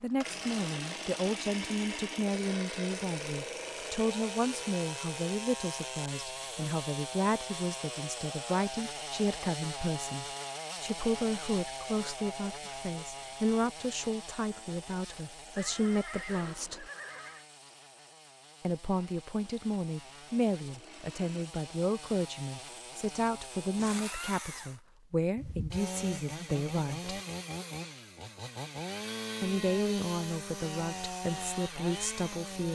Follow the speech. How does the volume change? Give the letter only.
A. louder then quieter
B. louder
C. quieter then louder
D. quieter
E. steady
E.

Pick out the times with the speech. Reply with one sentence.
You can hear the speech from 0.0 to 16.9 s, from 18.6 to 27.1 s and from 29.4 to 32.7 s.